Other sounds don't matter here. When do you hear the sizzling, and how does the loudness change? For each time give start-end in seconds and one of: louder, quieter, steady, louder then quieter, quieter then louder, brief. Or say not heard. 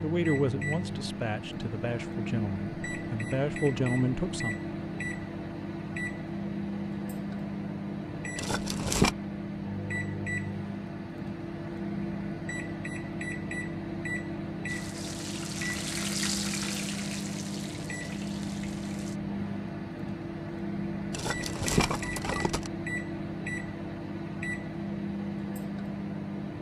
14.7-19.2 louder then quieter.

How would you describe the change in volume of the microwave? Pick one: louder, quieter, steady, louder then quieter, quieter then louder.
steady.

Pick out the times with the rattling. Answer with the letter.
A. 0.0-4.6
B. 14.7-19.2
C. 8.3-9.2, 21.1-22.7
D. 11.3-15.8
C.